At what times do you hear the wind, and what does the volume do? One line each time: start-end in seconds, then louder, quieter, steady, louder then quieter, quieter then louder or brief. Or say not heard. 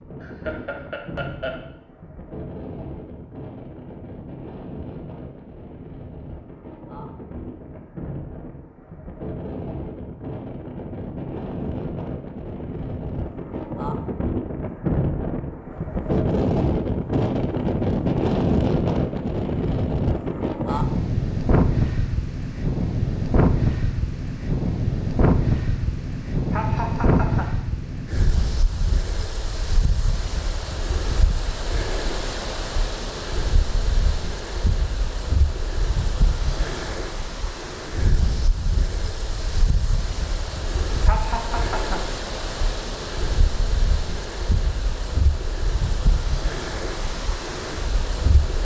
0.0-48.5 louder then quieter.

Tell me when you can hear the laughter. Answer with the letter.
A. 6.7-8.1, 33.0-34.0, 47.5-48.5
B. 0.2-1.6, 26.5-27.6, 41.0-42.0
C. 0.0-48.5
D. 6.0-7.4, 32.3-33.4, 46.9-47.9
B.